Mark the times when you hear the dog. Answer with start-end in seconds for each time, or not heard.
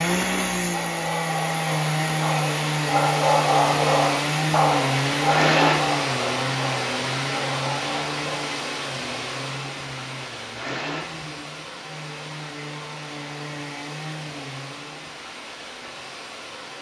0.6-8.6.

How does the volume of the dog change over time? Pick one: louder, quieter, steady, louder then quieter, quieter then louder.
louder then quieter.